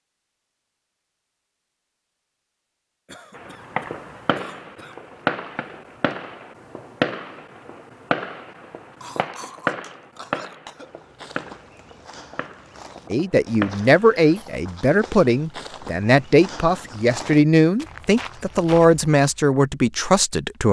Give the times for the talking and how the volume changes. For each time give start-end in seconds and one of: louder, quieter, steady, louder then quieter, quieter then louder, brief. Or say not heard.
13.1-20.6 steady.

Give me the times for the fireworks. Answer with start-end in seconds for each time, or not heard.
3.4-14.3.